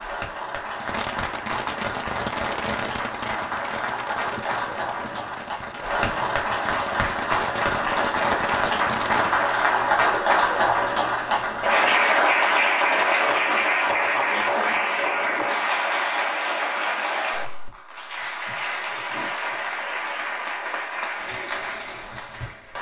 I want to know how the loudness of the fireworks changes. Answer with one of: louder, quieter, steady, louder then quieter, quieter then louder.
quieter then louder.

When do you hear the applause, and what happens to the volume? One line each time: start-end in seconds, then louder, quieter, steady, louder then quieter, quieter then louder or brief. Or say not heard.
0.0-22.7 louder then quieter.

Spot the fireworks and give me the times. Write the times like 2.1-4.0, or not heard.
0.7-9.5.